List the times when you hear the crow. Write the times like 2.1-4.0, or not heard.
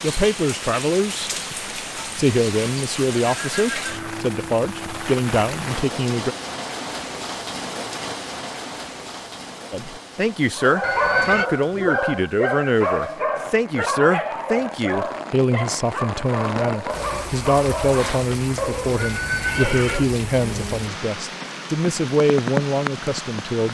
not heard.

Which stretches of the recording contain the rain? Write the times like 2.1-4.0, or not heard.
0.0-23.6.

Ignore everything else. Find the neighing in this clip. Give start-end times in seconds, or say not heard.
3.2-4.2, 10.8-11.5, 18.9-20.1.